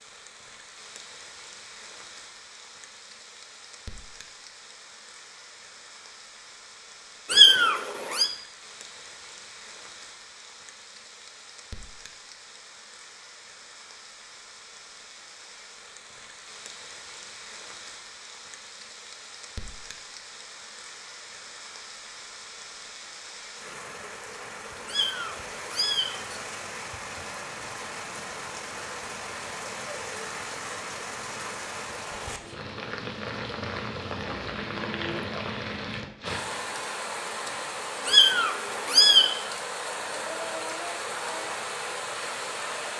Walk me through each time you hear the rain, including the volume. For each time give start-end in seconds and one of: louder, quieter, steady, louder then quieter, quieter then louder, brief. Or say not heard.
0.0-42.9 louder.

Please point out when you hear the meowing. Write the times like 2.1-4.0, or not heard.
7.3-8.3, 24.9-26.4, 38.0-39.3.